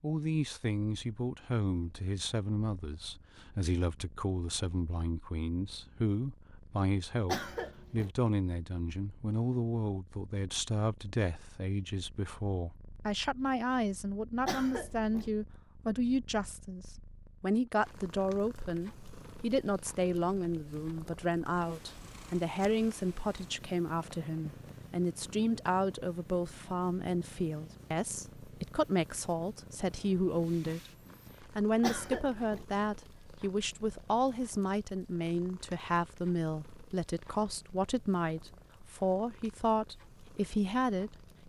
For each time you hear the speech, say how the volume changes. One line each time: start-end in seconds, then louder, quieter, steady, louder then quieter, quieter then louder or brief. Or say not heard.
0.0-41.1 steady.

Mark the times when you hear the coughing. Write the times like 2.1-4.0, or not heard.
7.2-8.1, 14.4-15.3, 31.8-32.6.